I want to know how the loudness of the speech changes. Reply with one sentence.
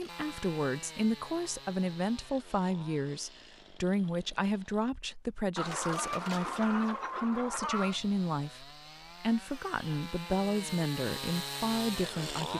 The volume of the speech stays about the same.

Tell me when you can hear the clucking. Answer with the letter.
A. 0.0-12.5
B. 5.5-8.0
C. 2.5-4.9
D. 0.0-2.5
B.